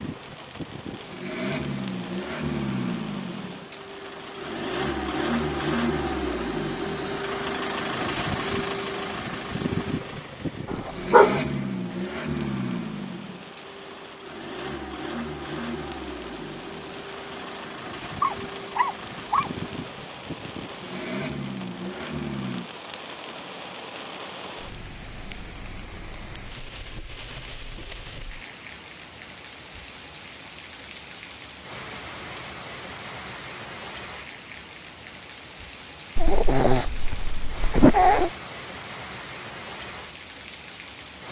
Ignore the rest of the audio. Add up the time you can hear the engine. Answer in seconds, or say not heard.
23 s.